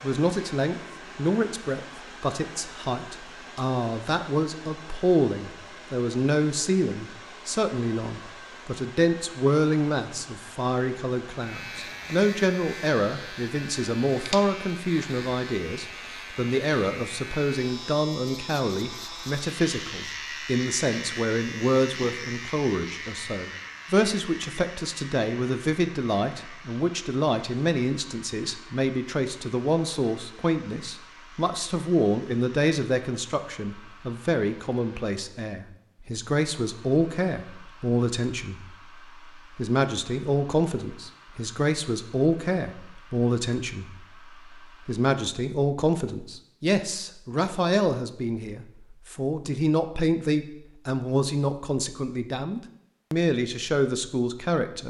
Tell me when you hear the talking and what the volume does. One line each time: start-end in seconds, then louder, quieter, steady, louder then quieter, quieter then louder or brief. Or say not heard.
0.0-38.6 steady
39.5-43.9 quieter then louder
44.9-54.8 steady.